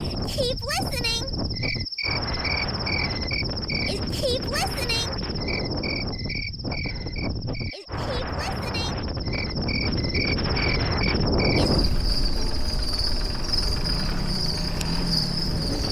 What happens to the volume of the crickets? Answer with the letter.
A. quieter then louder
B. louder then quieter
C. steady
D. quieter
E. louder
A.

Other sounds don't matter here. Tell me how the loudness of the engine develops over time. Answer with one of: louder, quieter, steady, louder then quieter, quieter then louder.
louder.